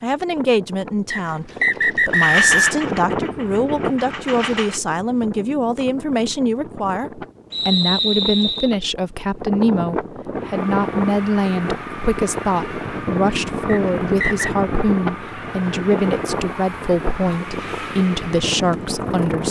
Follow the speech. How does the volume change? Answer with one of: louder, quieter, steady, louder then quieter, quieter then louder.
steady.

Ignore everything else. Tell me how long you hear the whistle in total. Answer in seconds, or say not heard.
4 s.